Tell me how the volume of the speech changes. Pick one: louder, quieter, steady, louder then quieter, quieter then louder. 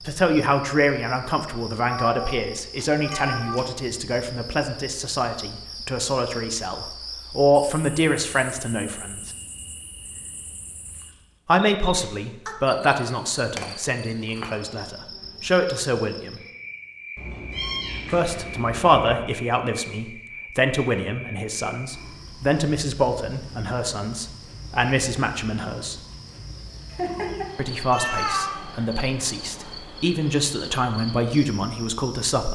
steady.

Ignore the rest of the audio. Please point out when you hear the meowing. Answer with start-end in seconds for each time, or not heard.
1.9-3.7, 17.1-19.2, 26.9-28.6.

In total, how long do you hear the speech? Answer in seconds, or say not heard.
27 s.